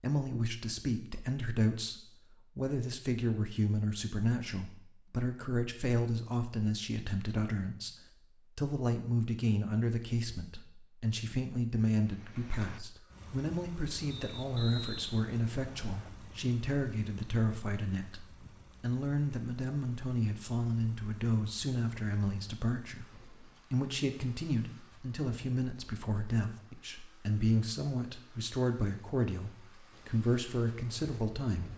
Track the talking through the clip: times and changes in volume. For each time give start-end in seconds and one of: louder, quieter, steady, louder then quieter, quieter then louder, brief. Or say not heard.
0.0-8.0 steady
8.6-31.7 steady.